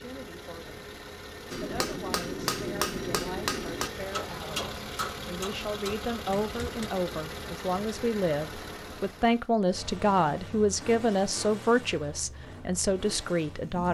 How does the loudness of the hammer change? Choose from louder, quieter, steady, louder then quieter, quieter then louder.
quieter.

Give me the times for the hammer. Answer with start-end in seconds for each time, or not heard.
1.5-6.9.